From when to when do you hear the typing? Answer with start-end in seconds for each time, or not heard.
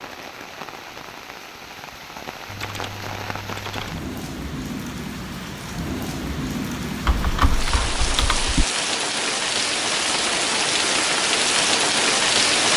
2.5-4.0, 7.0-8.7.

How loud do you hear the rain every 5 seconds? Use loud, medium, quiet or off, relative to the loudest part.
quiet, medium, loud.